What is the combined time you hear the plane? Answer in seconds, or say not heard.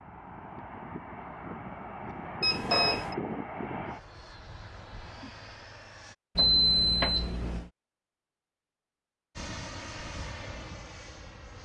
8 s.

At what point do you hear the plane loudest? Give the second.
3 s.